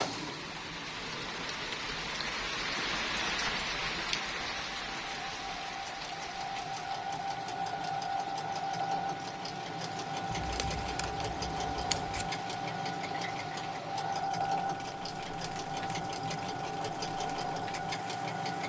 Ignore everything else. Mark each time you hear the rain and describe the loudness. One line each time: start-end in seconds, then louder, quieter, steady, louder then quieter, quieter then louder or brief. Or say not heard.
0.0-18.6 quieter.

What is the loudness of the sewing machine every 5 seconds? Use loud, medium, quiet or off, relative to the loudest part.
medium, loud, loud, loud.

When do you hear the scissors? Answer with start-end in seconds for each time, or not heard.
10.3-12.3.